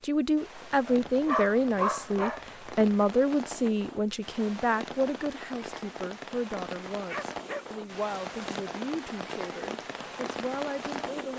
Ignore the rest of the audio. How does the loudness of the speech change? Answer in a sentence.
The volume of the speech goes down.